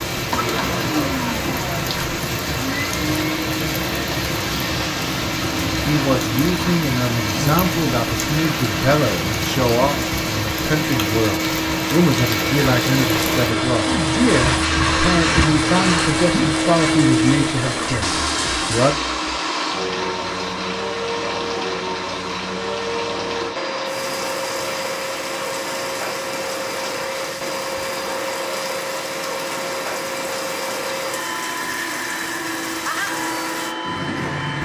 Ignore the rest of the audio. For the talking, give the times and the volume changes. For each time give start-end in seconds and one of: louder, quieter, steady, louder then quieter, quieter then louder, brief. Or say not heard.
5.8-18.9 steady.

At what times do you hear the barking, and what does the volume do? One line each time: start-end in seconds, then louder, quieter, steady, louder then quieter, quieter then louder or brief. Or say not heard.
not heard.